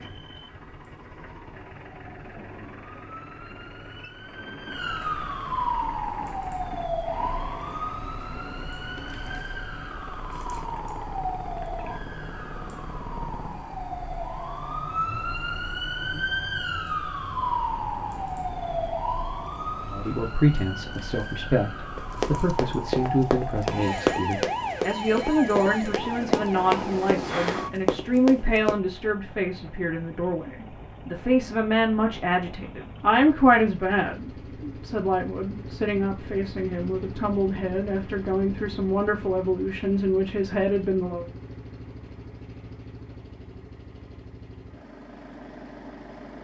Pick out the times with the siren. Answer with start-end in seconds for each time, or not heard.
0.0-27.7.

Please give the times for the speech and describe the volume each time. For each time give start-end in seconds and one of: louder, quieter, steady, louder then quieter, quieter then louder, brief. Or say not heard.
19.9-41.2 steady.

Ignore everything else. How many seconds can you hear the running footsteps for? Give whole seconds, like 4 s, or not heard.
7 s.